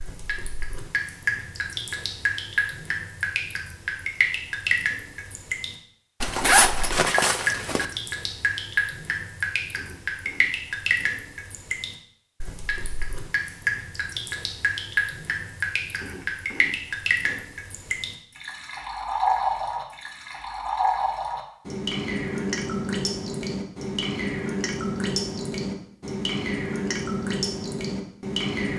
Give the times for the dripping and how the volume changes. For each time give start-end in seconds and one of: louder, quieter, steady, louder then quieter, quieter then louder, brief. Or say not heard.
0.0-28.7 steady.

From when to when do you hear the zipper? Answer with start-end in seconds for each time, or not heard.
6.2-7.8.